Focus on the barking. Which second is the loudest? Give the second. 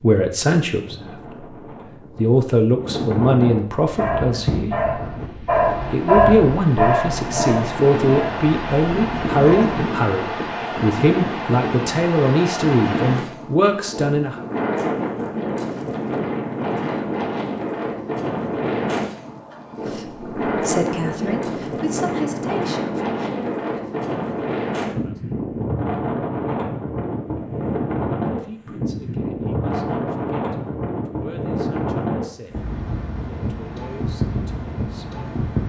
6 s.